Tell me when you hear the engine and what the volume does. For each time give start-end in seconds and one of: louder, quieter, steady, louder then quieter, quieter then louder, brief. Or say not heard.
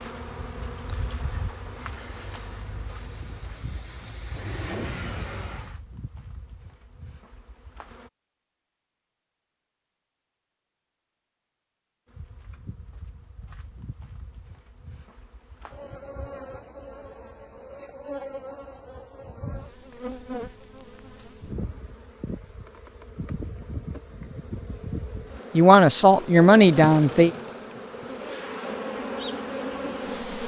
0.0-5.8 louder.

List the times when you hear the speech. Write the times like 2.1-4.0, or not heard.
25.6-27.3.